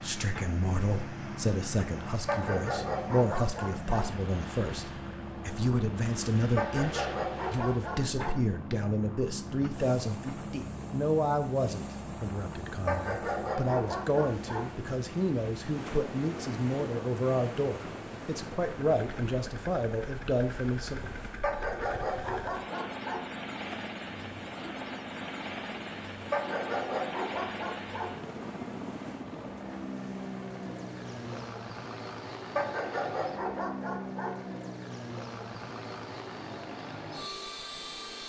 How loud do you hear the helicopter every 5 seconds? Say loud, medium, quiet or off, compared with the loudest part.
loud, loud, loud, medium, loud, loud, loud, loud.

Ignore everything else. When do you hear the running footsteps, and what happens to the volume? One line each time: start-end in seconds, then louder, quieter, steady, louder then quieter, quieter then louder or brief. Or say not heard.
not heard.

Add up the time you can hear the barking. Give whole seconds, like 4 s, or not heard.
11 s.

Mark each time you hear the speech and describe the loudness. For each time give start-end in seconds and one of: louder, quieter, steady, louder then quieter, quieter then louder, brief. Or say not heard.
0.0-21.1 steady.